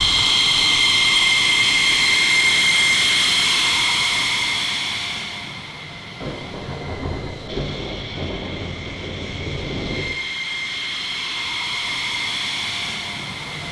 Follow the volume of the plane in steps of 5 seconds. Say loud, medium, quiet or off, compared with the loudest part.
loud, quiet, medium.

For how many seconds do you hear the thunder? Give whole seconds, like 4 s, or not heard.
4 s.